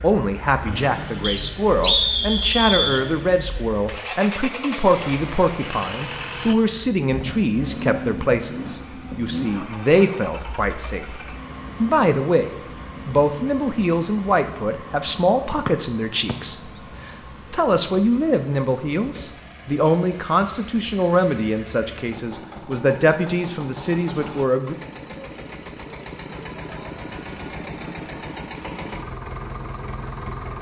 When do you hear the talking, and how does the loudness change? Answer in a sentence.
You can hear the talking from 0.0 to 11.1 s, at a steady volume; and from 11.8 to 24.8 s, at a steady volume.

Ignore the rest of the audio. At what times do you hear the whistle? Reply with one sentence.
You can hear the whistle from 1.2 to 3.0 s and from 15.7 to 16.4 s.